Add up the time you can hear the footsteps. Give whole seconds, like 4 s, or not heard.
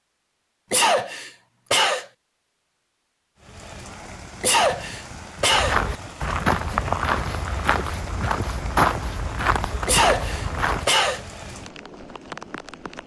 5 s.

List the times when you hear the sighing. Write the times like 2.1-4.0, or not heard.
not heard.